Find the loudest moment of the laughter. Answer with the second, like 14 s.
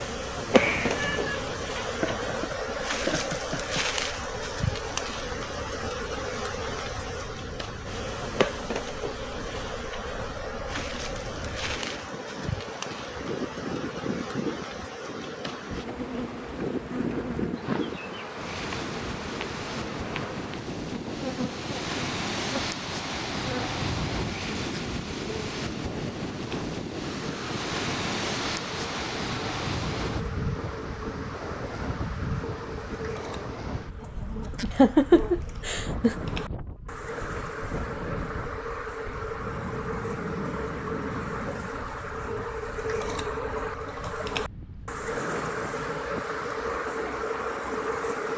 35 s.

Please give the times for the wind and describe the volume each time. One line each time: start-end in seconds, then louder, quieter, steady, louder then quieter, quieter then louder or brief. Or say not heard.
0.0-48.3 louder then quieter.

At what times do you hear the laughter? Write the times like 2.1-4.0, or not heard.
1.9-4.0, 34.6-36.1.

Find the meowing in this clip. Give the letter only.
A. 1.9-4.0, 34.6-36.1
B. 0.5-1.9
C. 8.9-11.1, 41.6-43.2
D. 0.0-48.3
B.